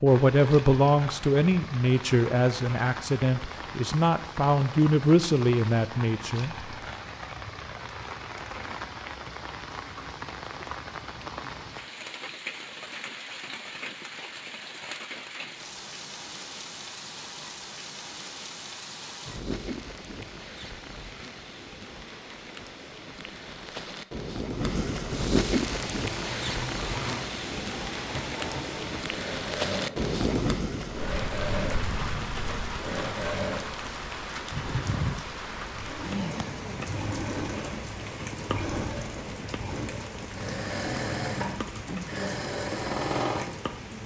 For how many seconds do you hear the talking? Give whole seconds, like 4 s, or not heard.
7 s.